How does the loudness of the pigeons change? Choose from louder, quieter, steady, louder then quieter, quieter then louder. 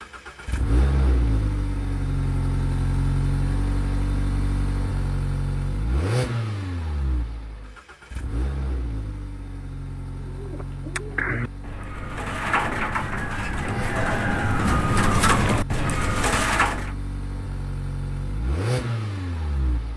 louder.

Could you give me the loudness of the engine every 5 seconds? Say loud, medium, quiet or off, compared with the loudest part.
loud, loud, medium, loud.